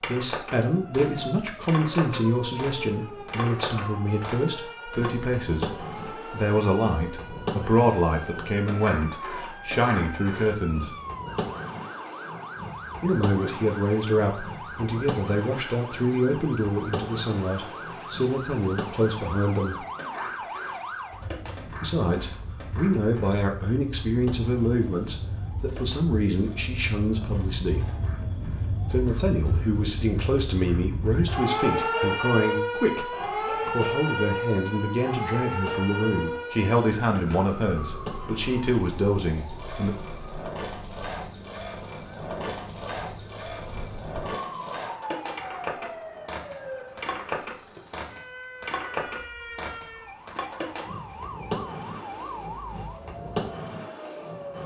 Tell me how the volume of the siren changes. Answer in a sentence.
The loudness of the siren goes up, then down.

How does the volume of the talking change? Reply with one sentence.
The volume of the talking stays about the same.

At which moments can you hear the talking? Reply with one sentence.
The talking can be heard from 0.1 to 10.9 s, from 13.0 to 19.9 s, from 21.8 to 27.9 s and from 28.9 to 40.0 s.